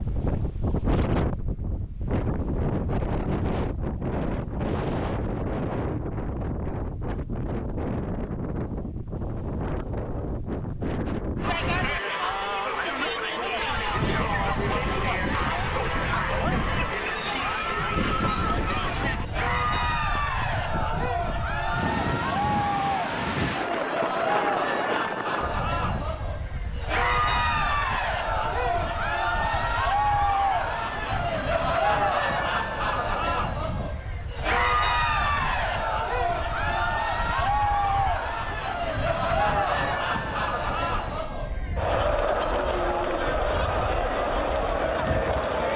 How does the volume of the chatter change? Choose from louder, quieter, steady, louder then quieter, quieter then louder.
steady.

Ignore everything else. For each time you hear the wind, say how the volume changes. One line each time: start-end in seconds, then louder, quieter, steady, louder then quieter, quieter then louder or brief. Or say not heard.
0.0-45.7 quieter.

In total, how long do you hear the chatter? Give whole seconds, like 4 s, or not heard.
34 s.